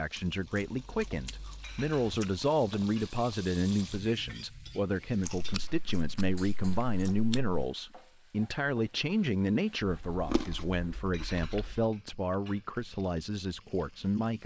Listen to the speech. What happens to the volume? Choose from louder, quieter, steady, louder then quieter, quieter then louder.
steady.